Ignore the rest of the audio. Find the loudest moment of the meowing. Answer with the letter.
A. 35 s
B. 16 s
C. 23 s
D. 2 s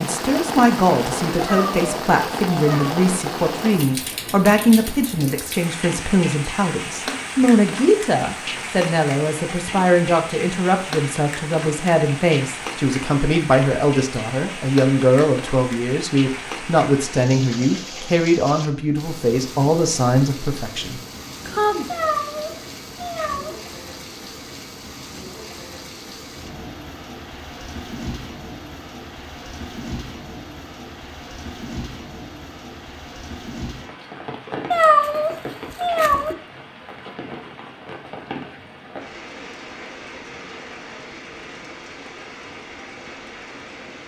A.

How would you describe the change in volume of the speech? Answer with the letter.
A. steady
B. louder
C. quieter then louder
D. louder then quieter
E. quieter
A.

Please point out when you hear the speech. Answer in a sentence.
The speech can be heard from 0.0 to 21.9 s.